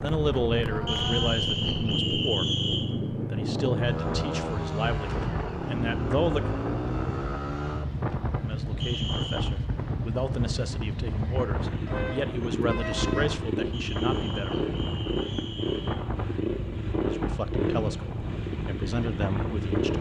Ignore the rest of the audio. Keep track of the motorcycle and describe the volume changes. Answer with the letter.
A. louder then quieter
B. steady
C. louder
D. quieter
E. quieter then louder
B.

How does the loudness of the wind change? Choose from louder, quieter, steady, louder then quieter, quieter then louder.
steady.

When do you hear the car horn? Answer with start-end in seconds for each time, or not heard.
11.8-13.4.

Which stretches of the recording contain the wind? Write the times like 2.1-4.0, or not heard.
0.0-19.9.